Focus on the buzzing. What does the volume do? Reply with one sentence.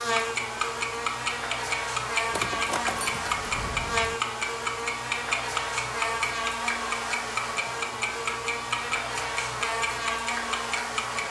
The loudness of the buzzing stays about the same.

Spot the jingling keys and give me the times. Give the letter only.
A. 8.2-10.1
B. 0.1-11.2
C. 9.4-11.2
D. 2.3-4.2
D.